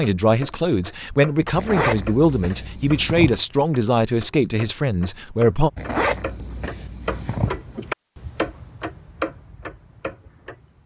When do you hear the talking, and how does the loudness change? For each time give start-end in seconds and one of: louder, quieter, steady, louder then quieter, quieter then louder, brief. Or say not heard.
0.0-5.7 steady.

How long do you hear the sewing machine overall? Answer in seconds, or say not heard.
not heard.